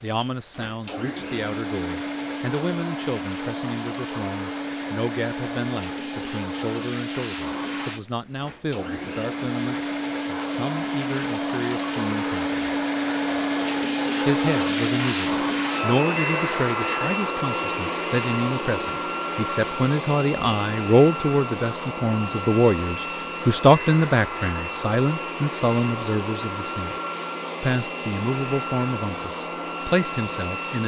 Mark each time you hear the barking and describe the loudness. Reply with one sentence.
You can't hear the barking here.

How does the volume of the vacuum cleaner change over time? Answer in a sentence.
The volume of the vacuum cleaner goes up, then down.